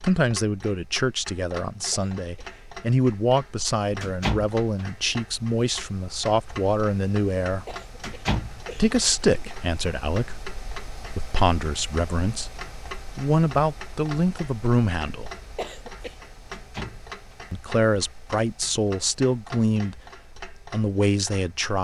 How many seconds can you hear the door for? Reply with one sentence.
You can hear the door for 3 seconds altogether.